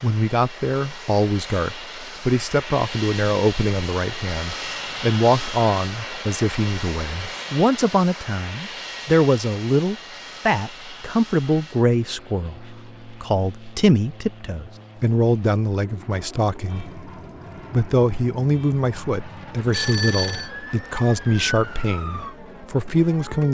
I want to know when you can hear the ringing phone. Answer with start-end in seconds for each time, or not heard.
19.6-20.5.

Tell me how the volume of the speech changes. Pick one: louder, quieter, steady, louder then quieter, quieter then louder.
steady.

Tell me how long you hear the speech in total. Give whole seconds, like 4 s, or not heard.
23 s.